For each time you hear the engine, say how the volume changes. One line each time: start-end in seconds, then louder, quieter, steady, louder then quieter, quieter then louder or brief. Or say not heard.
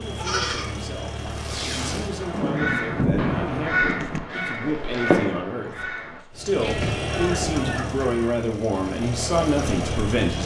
0.0-2.6 brief
6.3-10.4 quieter then louder.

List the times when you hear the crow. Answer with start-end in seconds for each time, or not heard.
2.1-8.3.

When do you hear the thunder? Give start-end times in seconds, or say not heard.
2.3-4.2.